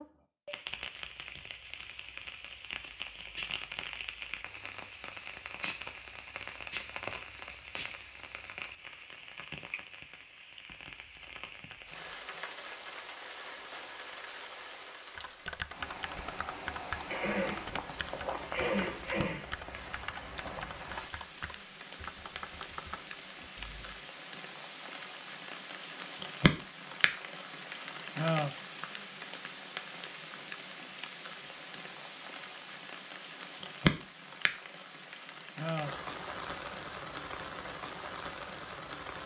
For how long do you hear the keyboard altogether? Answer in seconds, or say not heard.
9 s.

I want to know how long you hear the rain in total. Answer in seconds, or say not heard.
39 s.